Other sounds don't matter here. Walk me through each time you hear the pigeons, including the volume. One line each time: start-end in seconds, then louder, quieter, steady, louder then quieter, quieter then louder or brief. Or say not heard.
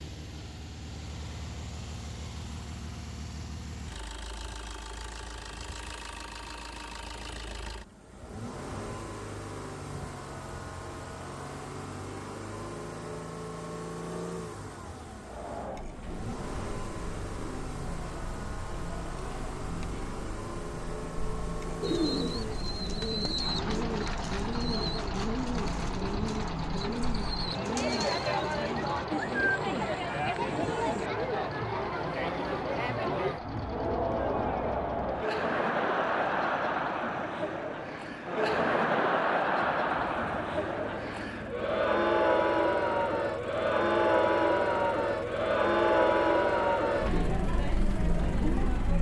21.8-31.1 steady.